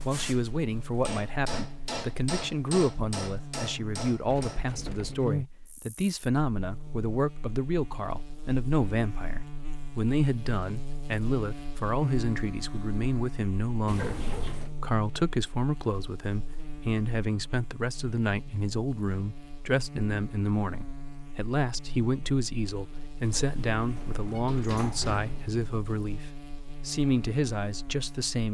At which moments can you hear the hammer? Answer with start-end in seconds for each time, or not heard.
0.0-4.7.